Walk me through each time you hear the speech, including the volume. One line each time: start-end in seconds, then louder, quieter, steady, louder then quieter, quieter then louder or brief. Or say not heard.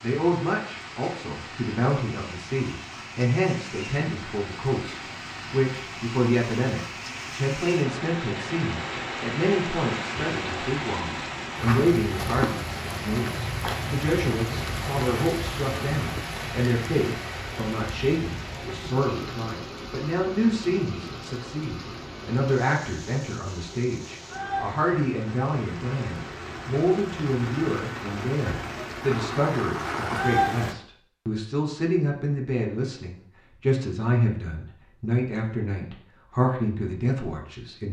0.0-37.8 steady.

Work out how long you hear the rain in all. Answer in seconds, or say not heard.
31 s.